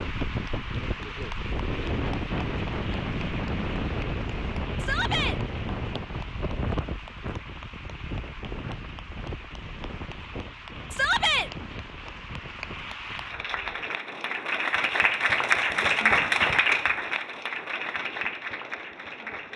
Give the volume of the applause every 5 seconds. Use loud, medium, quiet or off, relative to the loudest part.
quiet, quiet, medium, loud.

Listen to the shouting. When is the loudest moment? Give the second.
11 s.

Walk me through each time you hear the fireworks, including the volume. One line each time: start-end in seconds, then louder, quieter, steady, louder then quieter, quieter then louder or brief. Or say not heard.
not heard.